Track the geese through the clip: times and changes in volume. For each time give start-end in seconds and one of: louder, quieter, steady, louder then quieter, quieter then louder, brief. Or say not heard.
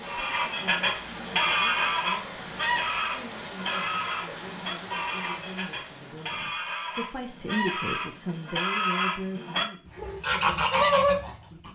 0.1-11.6 quieter then louder.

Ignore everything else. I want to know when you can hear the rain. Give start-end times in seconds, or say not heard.
0.0-8.7.